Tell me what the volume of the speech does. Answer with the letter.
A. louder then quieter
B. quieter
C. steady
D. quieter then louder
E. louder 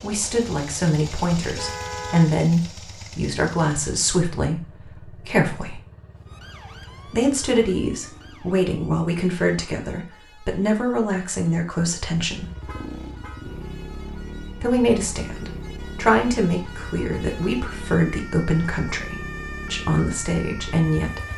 C.